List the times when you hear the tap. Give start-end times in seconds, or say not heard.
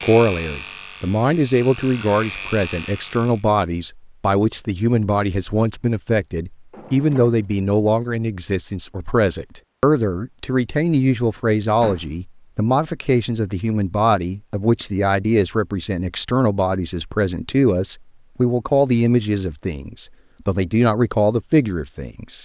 not heard.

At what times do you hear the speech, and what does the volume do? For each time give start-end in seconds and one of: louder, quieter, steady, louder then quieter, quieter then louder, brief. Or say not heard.
0.0-22.4 steady.